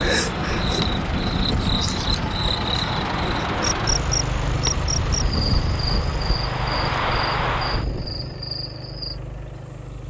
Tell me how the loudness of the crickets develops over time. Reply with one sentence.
The volume of the crickets goes down.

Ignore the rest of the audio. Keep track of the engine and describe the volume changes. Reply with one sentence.
The volume of the engine goes down.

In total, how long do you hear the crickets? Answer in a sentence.
The crickets can be heard for 10 seconds in total.